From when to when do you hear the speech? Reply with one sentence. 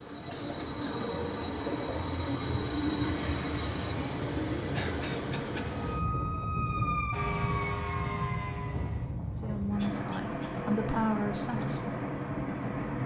You can hear the speech from 9.3 to 11.9 s.